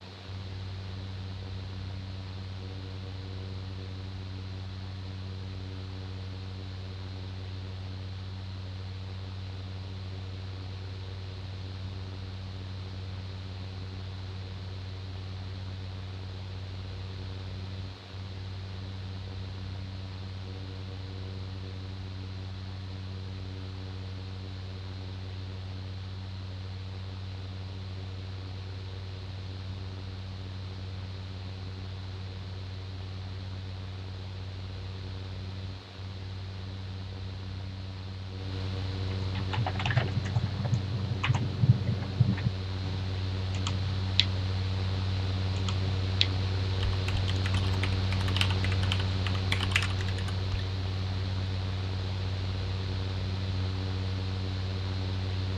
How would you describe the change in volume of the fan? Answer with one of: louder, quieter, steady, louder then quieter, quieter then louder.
louder.